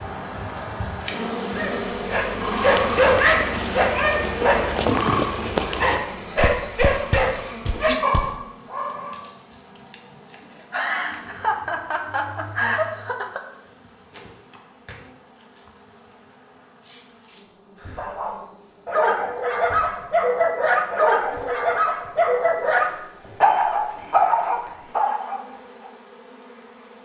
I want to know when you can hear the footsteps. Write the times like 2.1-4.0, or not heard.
2.5-8.4.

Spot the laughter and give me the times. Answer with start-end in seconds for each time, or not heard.
10.7-13.4.